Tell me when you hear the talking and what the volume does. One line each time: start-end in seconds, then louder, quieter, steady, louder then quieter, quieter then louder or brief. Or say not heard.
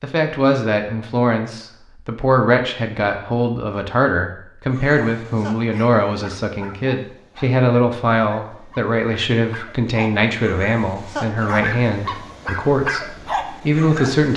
0.0-14.3 steady.